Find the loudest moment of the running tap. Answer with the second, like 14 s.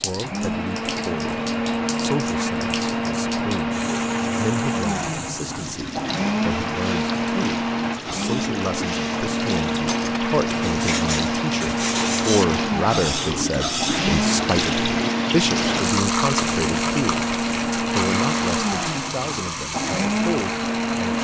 16 s.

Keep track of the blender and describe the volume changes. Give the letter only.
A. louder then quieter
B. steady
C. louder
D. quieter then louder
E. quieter
B.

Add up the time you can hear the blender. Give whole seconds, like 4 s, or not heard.
21 s.